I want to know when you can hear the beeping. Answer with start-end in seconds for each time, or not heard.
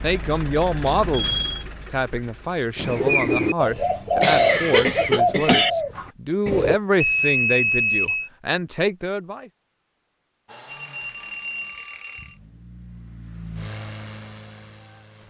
0.8-1.6, 7.0-8.3, 10.7-12.3.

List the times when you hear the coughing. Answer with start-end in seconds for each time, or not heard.
4.2-5.7.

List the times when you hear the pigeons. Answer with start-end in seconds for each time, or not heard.
2.8-6.8.